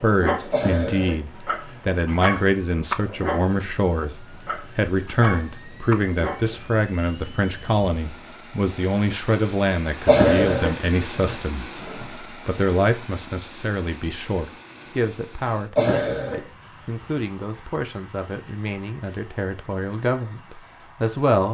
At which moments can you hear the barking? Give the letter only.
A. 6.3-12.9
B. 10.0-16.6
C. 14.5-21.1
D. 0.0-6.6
D.